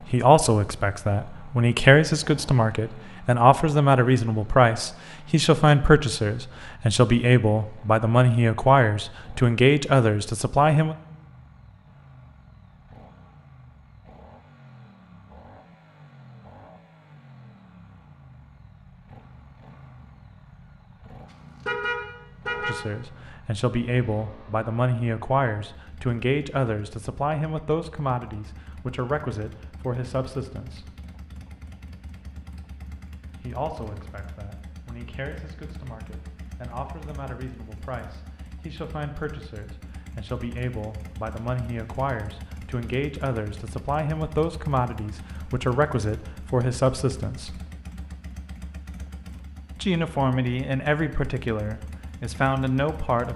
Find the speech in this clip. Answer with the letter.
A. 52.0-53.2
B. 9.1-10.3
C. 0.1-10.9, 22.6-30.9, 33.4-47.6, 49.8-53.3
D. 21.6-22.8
C.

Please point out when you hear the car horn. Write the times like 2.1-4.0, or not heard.
21.6-22.8.